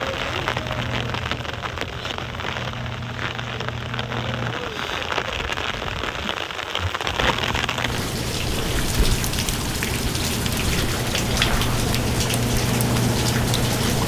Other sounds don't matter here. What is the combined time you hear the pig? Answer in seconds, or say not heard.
not heard.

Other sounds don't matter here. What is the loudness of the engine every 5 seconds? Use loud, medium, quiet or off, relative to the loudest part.
medium, medium, loud.